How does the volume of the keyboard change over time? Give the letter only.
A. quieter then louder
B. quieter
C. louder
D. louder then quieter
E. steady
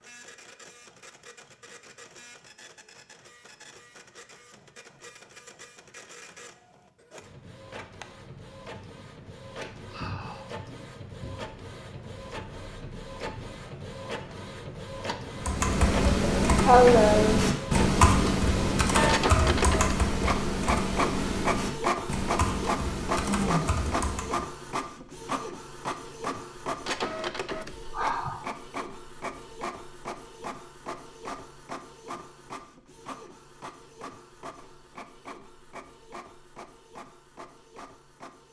B.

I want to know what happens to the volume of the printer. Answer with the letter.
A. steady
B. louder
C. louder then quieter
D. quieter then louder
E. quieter
C.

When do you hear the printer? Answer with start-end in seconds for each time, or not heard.
0.0-38.4.